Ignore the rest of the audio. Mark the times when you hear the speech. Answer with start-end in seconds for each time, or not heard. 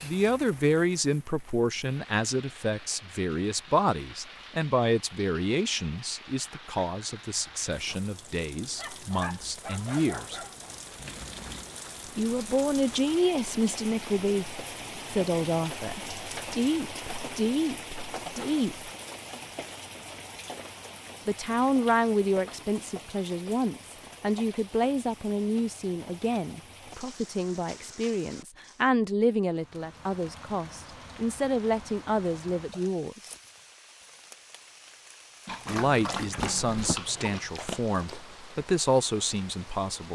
0.0-10.4, 12.2-18.9, 21.2-33.2, 35.6-40.0.